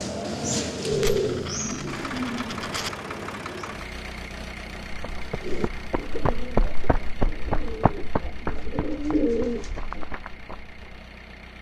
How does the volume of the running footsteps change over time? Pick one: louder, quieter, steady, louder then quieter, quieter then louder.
louder then quieter.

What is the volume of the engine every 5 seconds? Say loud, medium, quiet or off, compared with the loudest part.
loud, medium, medium.